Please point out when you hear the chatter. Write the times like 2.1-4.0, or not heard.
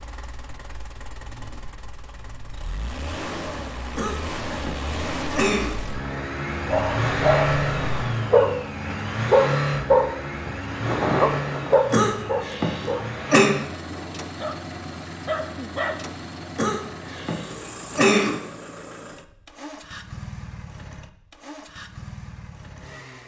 not heard.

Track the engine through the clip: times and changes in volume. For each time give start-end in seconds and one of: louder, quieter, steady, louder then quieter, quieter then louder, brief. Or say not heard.
0.0-23.2 louder then quieter.